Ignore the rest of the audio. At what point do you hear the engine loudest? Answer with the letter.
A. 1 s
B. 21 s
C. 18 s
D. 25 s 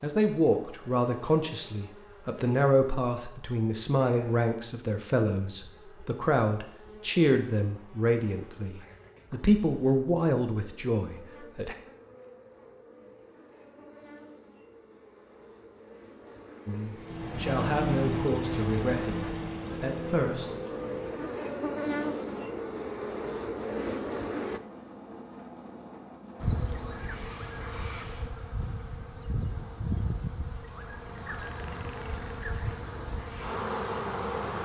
C.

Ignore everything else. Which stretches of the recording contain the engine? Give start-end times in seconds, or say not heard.
16.9-27.4.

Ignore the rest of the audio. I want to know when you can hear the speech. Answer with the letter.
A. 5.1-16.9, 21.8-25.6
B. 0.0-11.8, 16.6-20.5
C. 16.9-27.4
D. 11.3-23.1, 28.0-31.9
B.